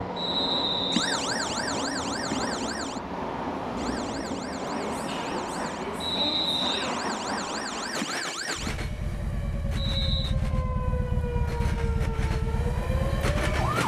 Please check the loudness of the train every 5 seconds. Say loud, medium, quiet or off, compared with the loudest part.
loud, loud, medium.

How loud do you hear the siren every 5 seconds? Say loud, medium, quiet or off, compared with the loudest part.
loud, medium, loud.